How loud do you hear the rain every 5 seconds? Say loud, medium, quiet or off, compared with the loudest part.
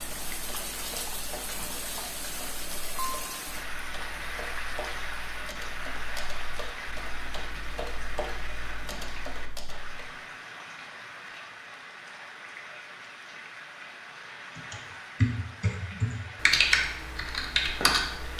loud, loud, medium, medium.